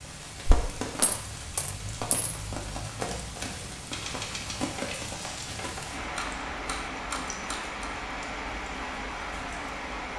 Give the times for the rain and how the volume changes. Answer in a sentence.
You can hear the rain from 0.0 to 10.1 s, at a steady volume.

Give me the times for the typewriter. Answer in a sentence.
The typewriter can be heard from 3.4 to 7.9 s.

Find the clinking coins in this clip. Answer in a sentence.
The clinking coins can be heard from 0.5 to 2.4 s.